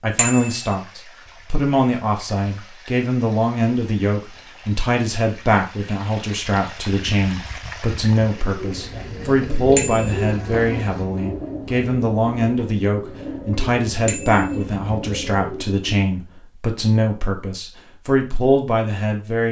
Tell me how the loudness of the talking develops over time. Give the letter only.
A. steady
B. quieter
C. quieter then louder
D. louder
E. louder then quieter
A.